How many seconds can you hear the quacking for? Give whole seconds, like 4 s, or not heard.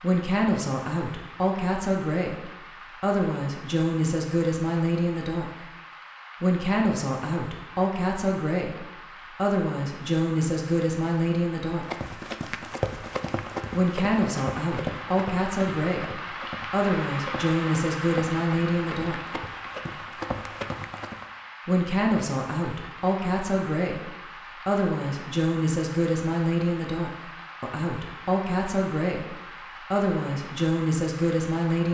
not heard.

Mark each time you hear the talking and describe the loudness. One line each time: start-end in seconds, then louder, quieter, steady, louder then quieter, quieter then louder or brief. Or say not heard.
0.0-5.7 steady
6.4-11.8 steady
13.7-19.4 steady
21.6-31.8 steady.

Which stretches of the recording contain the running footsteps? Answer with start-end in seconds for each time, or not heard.
11.8-21.2.